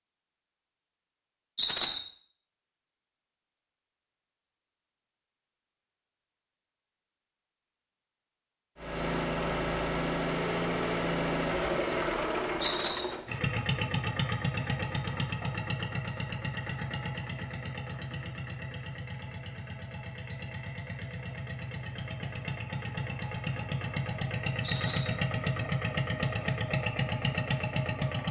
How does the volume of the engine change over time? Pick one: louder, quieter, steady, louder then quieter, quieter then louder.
quieter then louder.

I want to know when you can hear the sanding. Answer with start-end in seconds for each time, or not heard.
not heard.